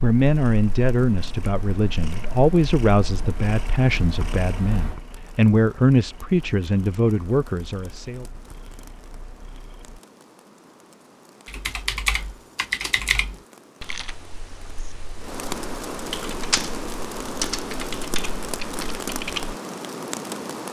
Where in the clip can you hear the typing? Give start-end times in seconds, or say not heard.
11.4-19.6.